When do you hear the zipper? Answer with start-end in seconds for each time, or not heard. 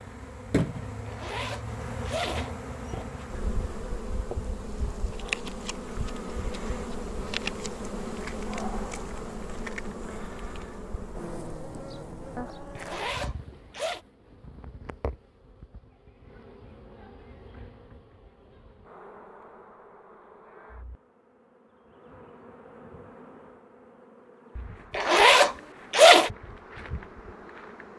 1.1-3.0, 12.8-14.0, 24.9-26.3.